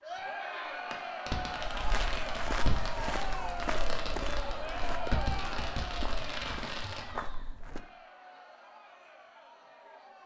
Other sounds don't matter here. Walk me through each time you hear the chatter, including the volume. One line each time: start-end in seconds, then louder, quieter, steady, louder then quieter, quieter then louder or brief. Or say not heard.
0.0-10.2 quieter.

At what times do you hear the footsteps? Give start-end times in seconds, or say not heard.
1.6-7.8.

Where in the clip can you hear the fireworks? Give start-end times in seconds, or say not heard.
0.9-7.0.